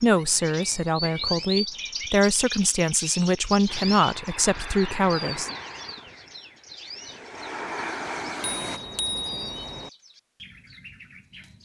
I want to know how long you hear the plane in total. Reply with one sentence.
You can hear the plane for 5 seconds altogether.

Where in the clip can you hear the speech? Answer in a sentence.
You can hear the speech from 0.0 to 5.5 s.